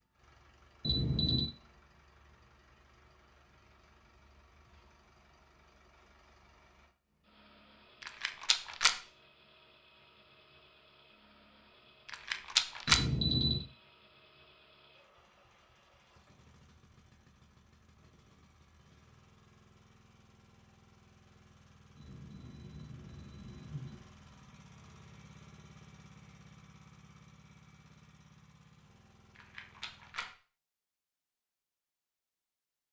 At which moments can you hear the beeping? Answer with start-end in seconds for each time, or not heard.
0.8-1.5, 12.8-13.7, 21.9-24.0.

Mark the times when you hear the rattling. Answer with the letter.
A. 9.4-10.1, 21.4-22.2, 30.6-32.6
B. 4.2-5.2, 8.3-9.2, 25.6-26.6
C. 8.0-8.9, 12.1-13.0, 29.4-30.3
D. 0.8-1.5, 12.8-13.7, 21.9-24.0
C.